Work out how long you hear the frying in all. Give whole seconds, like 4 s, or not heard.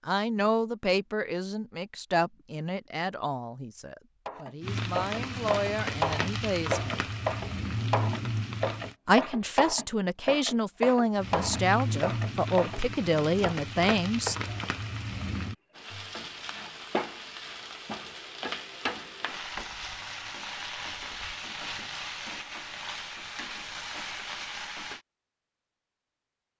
18 s.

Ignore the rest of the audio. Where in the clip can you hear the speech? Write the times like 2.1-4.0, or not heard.
0.1-7.0, 9.1-14.3.